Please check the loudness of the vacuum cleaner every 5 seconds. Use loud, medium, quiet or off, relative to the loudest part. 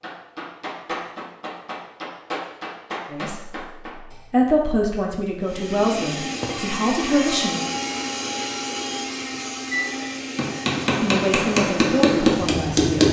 off, loud, medium.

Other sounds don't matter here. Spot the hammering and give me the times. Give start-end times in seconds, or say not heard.
0.0-4.2, 9.7-13.0.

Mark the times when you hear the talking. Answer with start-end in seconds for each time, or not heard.
3.1-7.7, 11.0-13.0.